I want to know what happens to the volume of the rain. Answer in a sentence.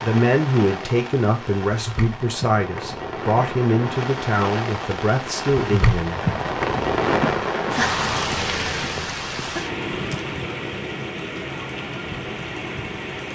The loudness of the rain goes up, then down.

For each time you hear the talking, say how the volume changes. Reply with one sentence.
The talking can be heard from 0.0 to 6.3 s, at a steady volume.